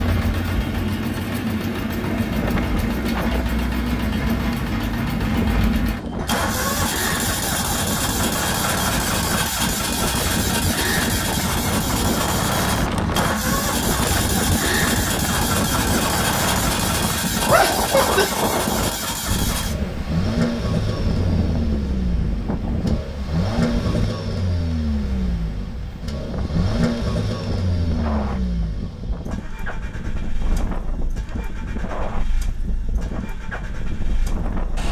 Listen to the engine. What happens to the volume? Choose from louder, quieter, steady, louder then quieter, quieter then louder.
quieter.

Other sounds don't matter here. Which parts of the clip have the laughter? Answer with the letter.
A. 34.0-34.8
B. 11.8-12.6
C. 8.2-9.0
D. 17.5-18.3
D.